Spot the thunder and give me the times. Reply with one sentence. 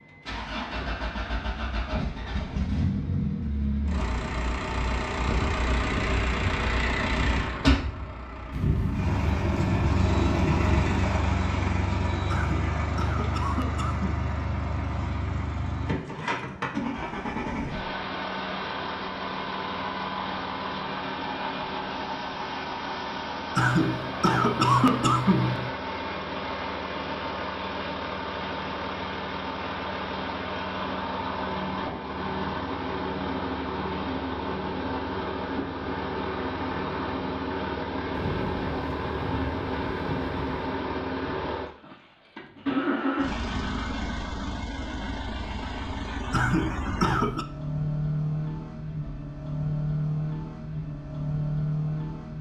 The thunder can be heard from 8.5 to 11.0 s and from 38.1 to 40.8 s.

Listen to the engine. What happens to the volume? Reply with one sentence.
The loudness of the engine stays about the same.